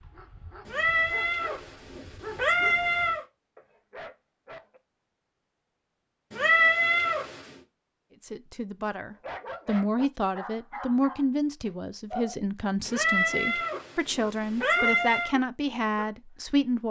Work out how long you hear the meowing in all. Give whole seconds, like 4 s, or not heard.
6 s.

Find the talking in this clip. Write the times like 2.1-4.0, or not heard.
8.2-16.8.